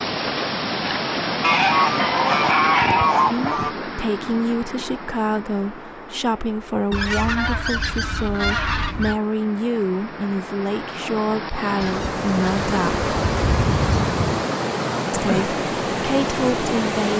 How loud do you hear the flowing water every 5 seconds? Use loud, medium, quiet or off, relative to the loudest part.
loud, quiet, loud, loud.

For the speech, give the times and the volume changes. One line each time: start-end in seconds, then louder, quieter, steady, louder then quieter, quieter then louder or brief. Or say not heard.
3.2-13.1 steady
15.1-17.1 brief.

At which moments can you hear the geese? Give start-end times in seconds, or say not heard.
1.4-3.8, 6.9-9.2, 11.8-14.4.